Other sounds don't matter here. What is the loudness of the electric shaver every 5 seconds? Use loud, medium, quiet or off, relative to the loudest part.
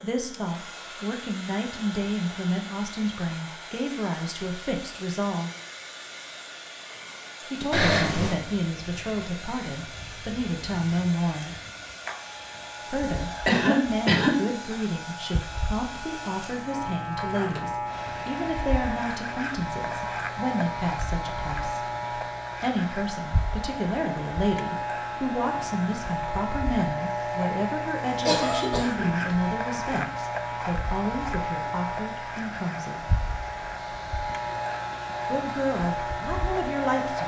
quiet, quiet, medium, loud, loud, loud, loud, loud.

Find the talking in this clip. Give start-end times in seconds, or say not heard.
0.0-5.5, 7.5-11.6, 12.8-21.9, 22.5-33.0, 35.2-37.2.